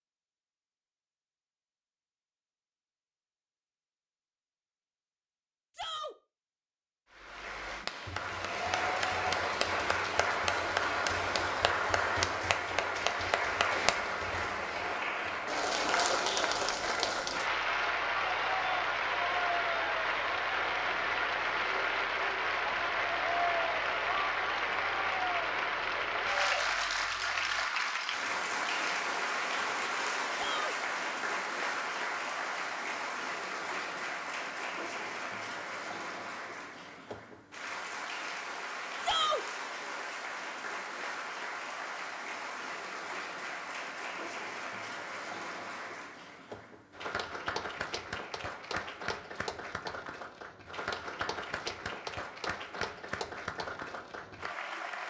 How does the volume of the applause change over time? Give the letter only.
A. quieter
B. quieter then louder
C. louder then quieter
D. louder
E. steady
A.